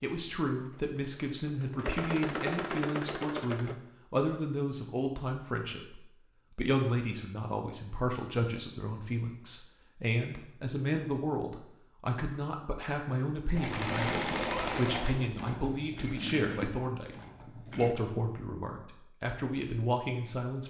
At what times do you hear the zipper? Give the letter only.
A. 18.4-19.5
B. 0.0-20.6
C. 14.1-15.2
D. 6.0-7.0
C.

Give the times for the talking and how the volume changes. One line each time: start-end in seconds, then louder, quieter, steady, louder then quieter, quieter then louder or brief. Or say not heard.
0.0-20.6 steady.